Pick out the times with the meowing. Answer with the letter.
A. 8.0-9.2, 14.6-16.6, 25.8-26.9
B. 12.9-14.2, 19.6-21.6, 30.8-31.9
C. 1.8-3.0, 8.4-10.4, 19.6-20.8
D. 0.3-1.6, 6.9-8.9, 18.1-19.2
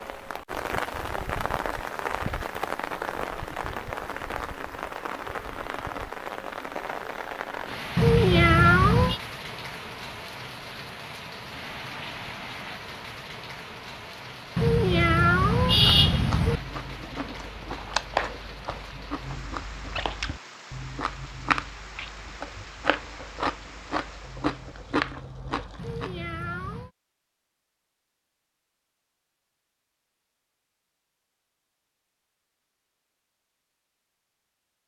A.